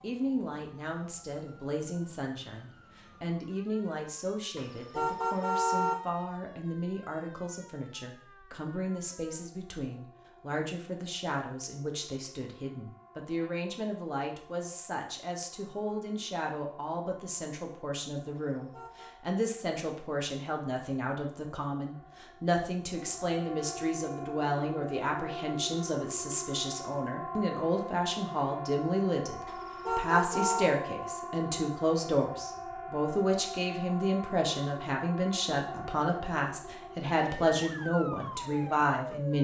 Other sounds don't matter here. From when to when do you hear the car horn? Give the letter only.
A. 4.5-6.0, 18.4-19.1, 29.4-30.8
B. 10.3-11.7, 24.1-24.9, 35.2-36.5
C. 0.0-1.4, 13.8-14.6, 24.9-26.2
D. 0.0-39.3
A.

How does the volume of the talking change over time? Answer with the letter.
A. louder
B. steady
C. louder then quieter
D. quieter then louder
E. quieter
A.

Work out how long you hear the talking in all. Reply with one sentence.
You can hear the talking for 39 seconds altogether.